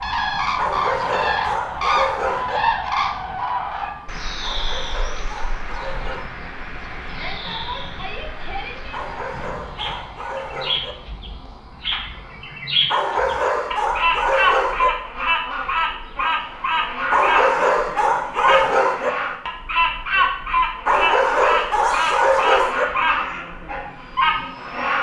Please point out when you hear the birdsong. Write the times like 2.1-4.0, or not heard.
0.0-24.9.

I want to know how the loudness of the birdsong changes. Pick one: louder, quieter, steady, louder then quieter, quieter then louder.
quieter then louder.